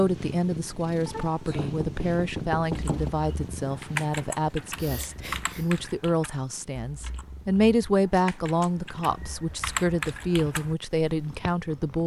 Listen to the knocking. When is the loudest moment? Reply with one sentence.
The loudest moment of the knocking is at 3 seconds.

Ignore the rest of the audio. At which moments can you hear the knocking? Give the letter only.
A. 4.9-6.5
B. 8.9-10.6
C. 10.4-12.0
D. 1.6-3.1
D.